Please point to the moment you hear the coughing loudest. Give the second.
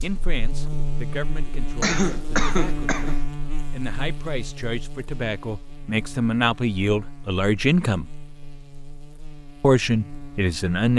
2 s.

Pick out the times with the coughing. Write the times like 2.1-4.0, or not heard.
1.8-3.2.